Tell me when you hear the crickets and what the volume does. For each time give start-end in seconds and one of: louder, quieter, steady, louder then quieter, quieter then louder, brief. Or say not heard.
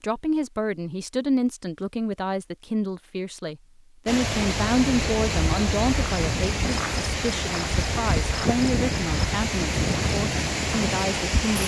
4.2-11.6 steady.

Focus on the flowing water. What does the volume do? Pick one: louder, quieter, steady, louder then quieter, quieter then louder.
steady.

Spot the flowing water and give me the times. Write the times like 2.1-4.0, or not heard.
4.0-11.6.